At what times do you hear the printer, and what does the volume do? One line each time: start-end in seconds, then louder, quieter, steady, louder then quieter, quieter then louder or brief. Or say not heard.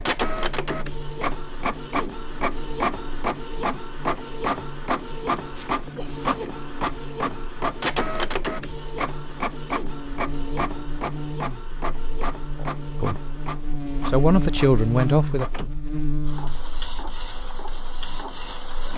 0.0-18.9 quieter.